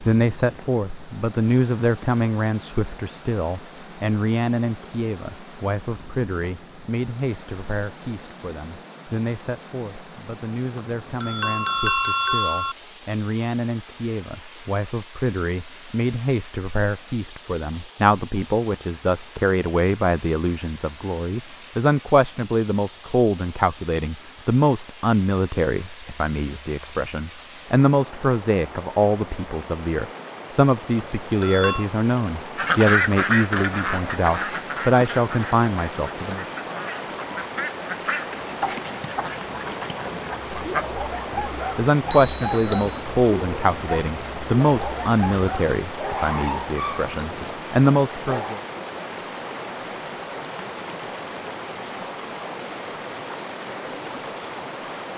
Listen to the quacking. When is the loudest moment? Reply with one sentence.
The loudest moment of the quacking is at 33 seconds.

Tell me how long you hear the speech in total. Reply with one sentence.
The speech can be heard for 44 seconds in total.